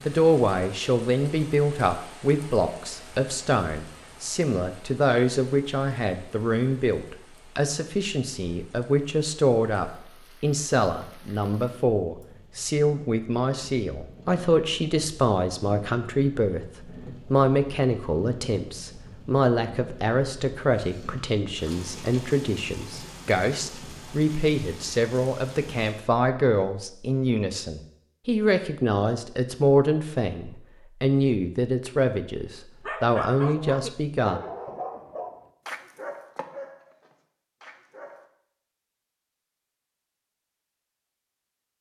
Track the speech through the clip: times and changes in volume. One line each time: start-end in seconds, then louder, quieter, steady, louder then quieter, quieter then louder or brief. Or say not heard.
0.1-34.4 steady.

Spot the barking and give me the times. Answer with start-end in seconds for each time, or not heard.
32.8-38.2.